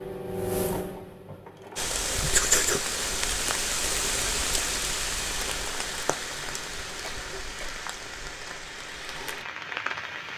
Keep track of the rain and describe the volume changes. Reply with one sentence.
The volume of the rain goes down.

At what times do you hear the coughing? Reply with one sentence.
The coughing can be heard from 7.0 to 7.8 s.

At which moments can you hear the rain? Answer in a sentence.
You can hear the rain from 1.8 to 10.3 s.